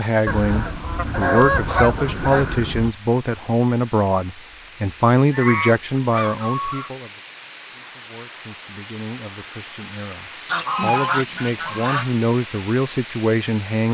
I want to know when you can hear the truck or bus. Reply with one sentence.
You can't hear the truck or bus here.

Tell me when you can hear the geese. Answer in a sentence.
The geese can be heard from 0.2 to 3.0 s, from 5.3 to 6.9 s and from 10.4 to 12.1 s.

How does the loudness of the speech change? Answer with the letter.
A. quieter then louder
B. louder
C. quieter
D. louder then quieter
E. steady
A.